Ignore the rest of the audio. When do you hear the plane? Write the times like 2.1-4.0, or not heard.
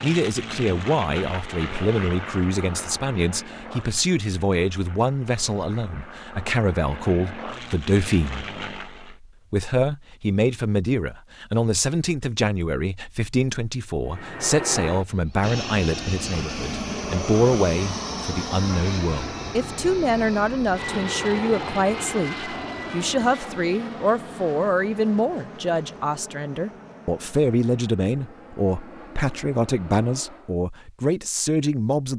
0.0-9.2, 14.1-30.6.